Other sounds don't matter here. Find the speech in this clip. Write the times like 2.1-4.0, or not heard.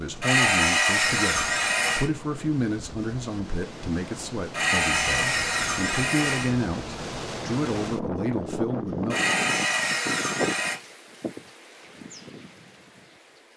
0.0-9.2.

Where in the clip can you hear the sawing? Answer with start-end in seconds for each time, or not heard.
0.2-2.1, 4.5-6.5, 9.1-10.8.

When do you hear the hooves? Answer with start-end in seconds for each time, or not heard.
not heard.